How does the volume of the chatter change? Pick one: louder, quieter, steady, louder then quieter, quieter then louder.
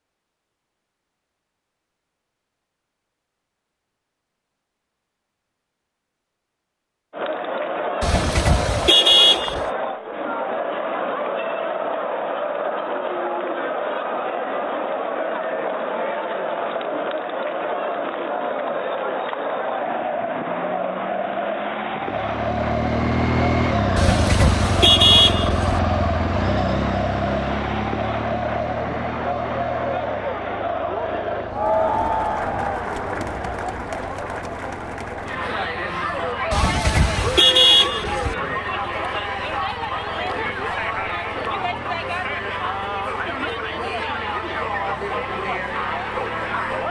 steady.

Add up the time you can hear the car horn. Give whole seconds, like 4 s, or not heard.
5 s.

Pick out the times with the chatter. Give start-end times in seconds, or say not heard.
7.1-46.8.